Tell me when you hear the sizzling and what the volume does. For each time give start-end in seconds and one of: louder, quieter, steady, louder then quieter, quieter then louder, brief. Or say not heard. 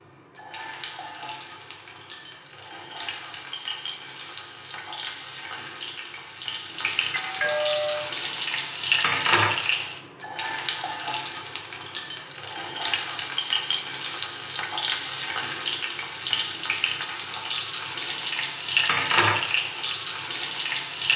0.0-21.1 louder.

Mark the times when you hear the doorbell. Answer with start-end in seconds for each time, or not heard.
7.1-8.2.